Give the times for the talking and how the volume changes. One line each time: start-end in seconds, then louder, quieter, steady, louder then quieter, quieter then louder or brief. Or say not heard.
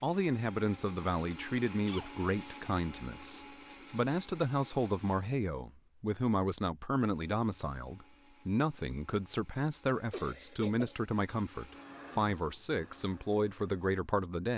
0.0-14.5 steady.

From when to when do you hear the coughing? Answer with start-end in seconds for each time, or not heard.
1.9-2.9, 10.1-11.1.